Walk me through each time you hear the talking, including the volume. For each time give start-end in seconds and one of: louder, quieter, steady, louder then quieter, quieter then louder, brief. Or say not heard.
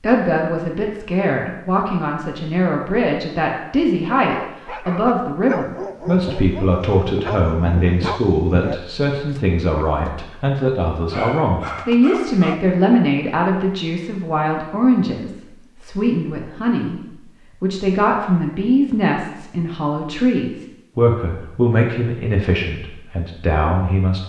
0.0-24.2 steady.